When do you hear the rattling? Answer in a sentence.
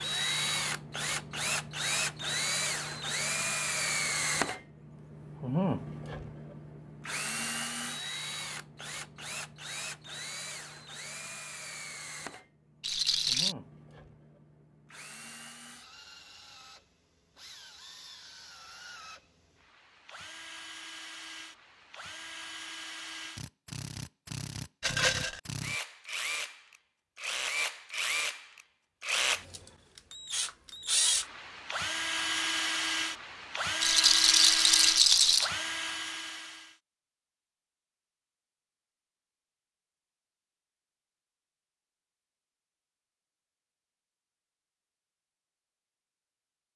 The rattling can be heard from 12.8 to 13.6 s, from 24.8 to 25.4 s and from 33.8 to 35.5 s.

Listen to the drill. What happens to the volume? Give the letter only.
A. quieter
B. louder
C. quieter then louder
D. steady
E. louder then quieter
C.